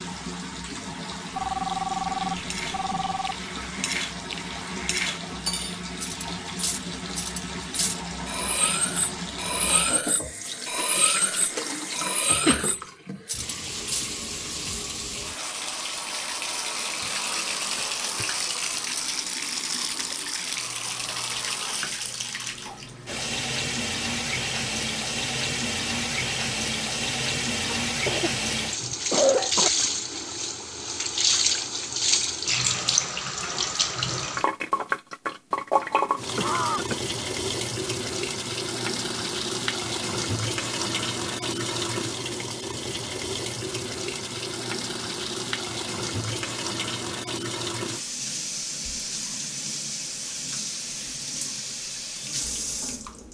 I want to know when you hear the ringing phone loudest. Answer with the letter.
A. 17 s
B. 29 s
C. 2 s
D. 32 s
C.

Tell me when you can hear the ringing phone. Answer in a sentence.
The ringing phone can be heard from 1.3 to 3.4 s.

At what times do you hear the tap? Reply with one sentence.
The tap can be heard from 0.0 to 53.2 s.